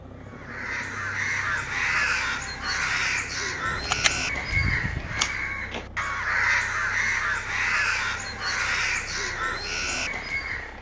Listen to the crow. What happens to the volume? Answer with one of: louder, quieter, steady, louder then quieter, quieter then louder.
steady.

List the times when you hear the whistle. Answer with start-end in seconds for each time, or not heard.
not heard.